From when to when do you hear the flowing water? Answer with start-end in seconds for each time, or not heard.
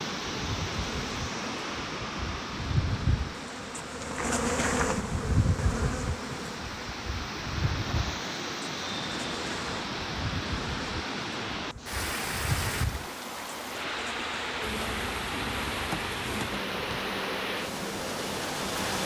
0.0-19.0.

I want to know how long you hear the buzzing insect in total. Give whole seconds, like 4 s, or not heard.
19 s.